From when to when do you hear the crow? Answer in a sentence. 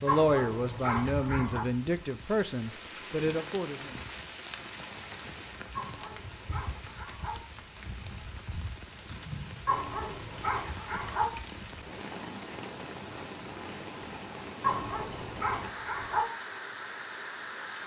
The crow can't be heard in this clip.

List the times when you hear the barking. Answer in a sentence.
You can hear the barking from 0.1 to 1.6 s, from 5.8 to 7.3 s, from 9.7 to 11.2 s and from 14.6 to 16.2 s.